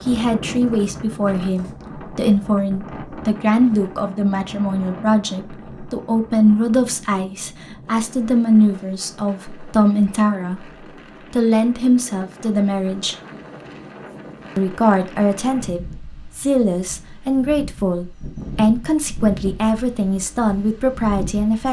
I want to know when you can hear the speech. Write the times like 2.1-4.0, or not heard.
0.1-10.7, 11.3-13.2, 14.6-21.6.